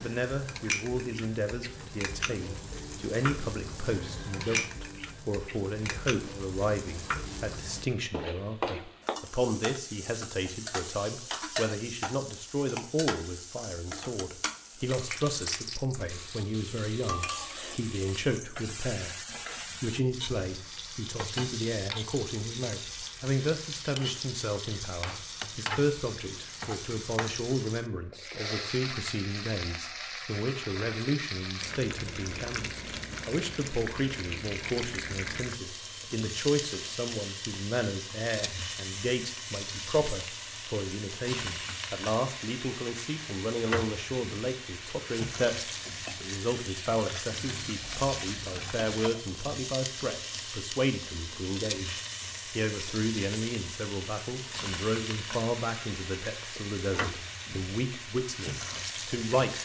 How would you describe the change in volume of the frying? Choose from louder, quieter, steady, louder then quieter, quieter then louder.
steady.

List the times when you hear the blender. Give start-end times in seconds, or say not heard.
not heard.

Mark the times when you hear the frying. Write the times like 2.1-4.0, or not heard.
0.0-59.6.